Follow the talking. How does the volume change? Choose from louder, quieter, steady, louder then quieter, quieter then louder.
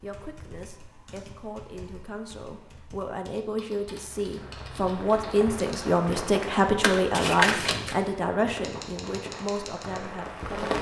louder then quieter.